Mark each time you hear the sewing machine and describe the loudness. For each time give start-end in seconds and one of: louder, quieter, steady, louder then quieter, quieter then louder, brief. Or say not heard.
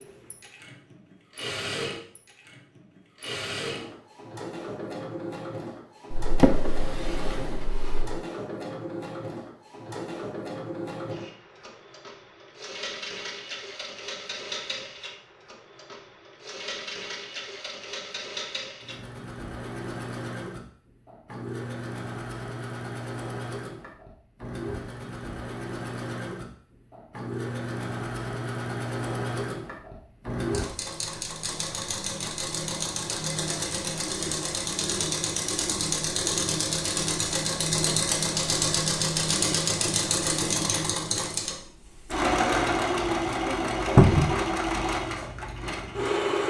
0.0-46.4 louder.